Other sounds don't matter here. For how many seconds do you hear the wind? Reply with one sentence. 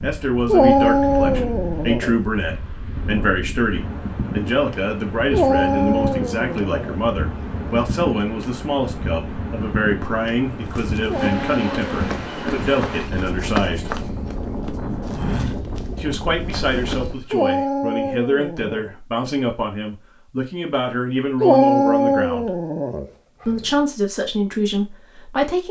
The wind can be heard for 17 seconds in total.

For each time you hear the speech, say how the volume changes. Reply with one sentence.
You can hear the speech from 0.0 to 14.1 s, at a steady volume; from 15.9 to 22.6 s, at a steady volume; and briefly from 23.4 to 25.6 s.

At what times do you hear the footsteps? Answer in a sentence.
The footsteps can be heard from 10.7 to 17.4 s.